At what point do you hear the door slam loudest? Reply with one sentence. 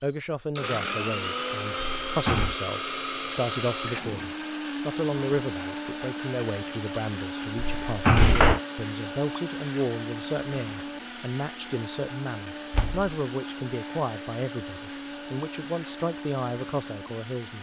The volume of the door slam peaks at 8 seconds.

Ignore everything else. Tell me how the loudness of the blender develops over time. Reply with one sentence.
The loudness of the blender goes down.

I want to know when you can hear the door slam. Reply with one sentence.
The door slam can be heard from 1.8 to 2.5 s, from 7.5 to 8.6 s and from 12.7 to 13.2 s.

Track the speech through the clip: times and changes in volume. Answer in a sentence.
You can hear the speech from 0.0 to 17.5 s, at a steady volume.